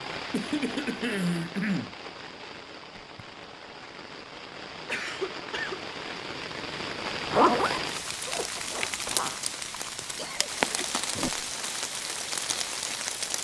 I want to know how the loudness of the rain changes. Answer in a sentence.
The volume of the rain goes up.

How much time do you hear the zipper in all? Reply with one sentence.
The zipper can be heard for 3 seconds in total.